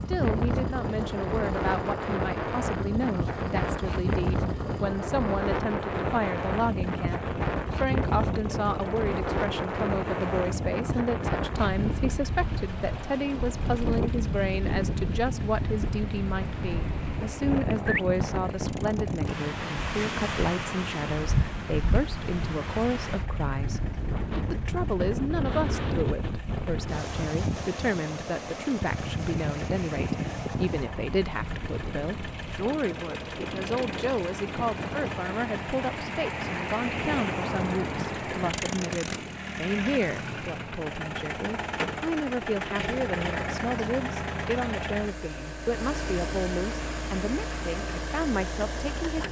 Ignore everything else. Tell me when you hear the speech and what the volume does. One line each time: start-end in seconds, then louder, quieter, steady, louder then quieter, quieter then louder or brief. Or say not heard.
0.1-49.2 steady.